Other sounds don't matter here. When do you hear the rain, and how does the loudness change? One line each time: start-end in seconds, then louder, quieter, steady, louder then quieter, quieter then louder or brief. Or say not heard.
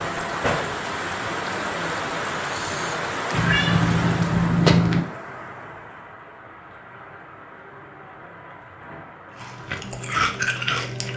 0.0-11.1 quieter.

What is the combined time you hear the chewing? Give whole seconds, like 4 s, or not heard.
2 s.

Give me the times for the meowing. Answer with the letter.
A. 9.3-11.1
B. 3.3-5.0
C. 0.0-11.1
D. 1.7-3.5
B.